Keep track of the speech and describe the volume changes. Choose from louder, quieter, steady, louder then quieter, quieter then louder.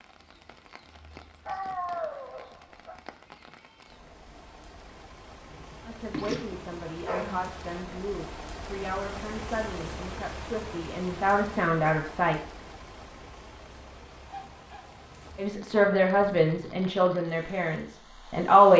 louder.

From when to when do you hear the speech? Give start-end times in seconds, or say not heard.
5.8-12.4, 15.3-18.7.